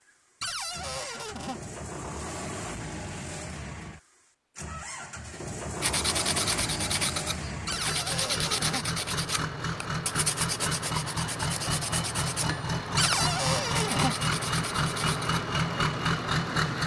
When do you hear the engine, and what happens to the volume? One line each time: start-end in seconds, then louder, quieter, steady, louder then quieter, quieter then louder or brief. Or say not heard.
0.0-16.8 louder.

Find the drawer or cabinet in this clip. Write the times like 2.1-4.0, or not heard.
0.4-1.6, 7.7-8.8, 12.9-14.2.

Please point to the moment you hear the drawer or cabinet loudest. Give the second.
13 s.